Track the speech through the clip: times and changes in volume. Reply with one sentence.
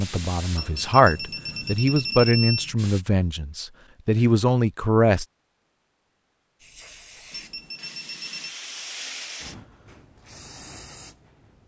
The speech can be heard from 0.0 to 5.2 s, getting quieter then louder.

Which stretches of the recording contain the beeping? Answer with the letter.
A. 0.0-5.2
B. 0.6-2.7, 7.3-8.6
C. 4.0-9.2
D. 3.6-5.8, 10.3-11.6
B.